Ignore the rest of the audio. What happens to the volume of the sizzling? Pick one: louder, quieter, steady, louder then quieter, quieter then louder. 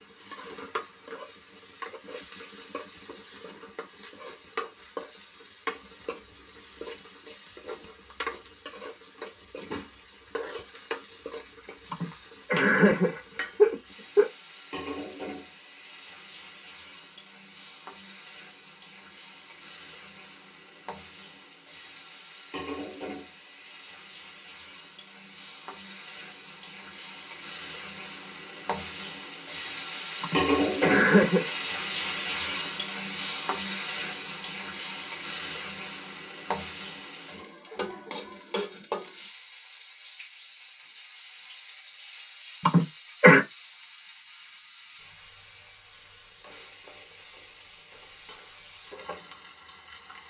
louder then quieter.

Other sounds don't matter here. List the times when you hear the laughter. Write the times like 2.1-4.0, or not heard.
11.9-14.3, 30.2-31.5, 42.6-43.4.